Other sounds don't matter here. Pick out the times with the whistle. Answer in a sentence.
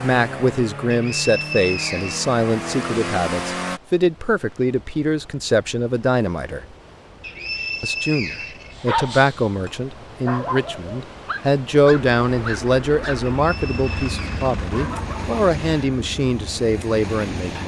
You can hear the whistle from 0.9 to 2.9 s, from 7.2 to 8.8 s and from 13.2 to 14.5 s.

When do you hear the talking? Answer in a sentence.
The talking can be heard from 0.0 to 6.7 s and from 7.8 to 17.6 s.